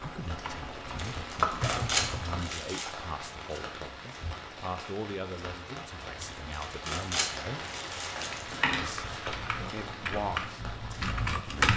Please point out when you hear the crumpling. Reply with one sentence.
You can hear the crumpling from 1.1 to 2.9 s and from 6.2 to 8.9 s.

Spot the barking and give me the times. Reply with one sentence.
You can't hear the barking here.